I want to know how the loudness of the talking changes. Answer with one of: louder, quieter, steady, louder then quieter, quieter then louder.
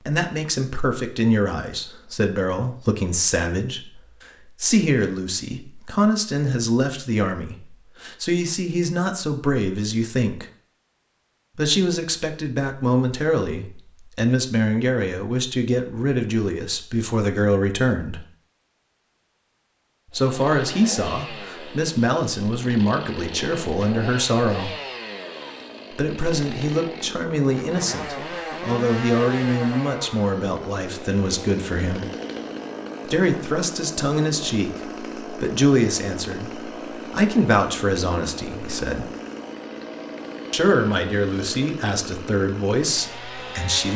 steady.